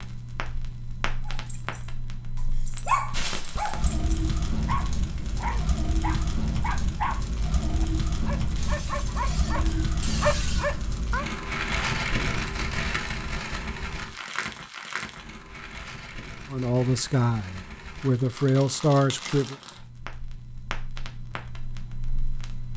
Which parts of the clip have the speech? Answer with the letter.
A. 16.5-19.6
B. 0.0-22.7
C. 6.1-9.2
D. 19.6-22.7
A.